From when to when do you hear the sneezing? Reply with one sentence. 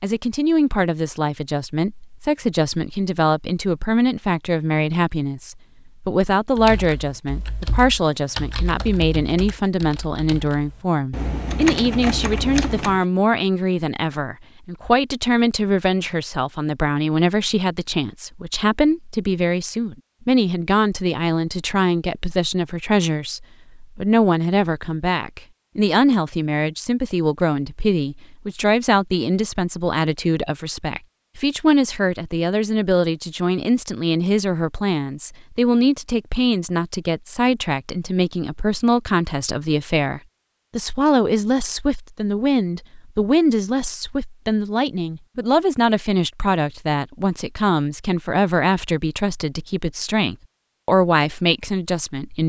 You can't hear the sneezing here.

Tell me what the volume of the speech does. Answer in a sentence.
The loudness of the speech stays about the same.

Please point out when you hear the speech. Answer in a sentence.
The speech can be heard from 0.0 to 52.4 s.